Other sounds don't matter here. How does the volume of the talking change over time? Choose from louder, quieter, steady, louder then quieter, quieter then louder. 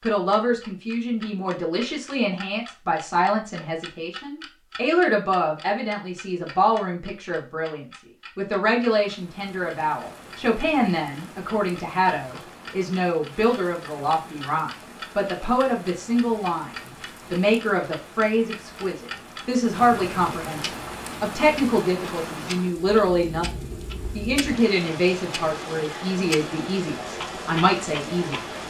steady.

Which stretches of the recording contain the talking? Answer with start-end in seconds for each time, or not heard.
0.0-23.4, 24.1-28.4.